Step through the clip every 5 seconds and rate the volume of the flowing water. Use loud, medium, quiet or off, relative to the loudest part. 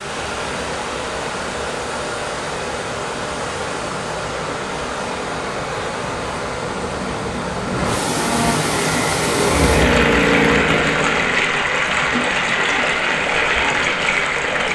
medium, loud, loud.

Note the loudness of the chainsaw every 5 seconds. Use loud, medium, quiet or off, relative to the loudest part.
off, loud, loud.